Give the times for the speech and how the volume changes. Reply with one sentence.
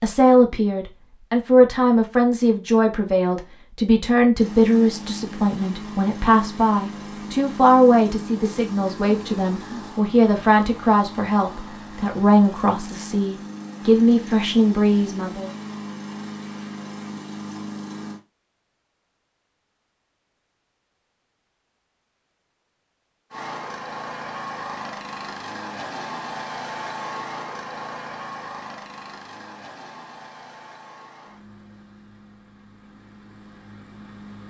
You can hear the speech from 0.0 to 15.5 s, at a steady volume.